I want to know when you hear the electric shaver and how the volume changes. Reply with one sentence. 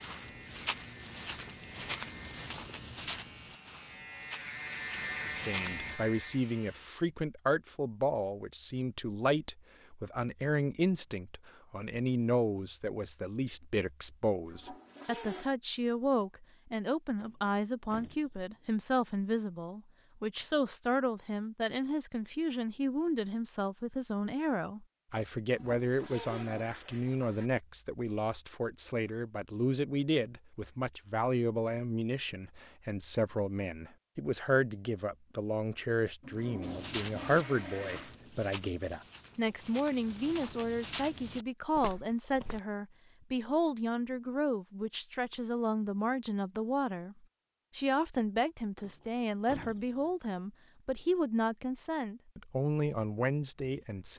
The electric shaver can be heard from 0.0 to 6.9 s, getting louder.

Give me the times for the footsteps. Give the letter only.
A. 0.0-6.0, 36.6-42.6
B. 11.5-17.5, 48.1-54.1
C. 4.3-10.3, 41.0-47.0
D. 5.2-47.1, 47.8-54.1
A.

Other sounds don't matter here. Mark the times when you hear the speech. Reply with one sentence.
The speech can be heard from 5.2 to 47.1 s and from 47.8 to 54.1 s.